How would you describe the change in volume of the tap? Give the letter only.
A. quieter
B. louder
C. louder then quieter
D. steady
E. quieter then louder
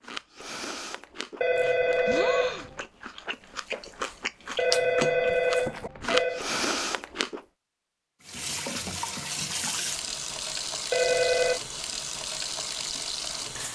D.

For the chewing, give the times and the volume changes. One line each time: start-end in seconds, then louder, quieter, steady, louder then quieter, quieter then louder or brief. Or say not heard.
0.0-7.4 louder.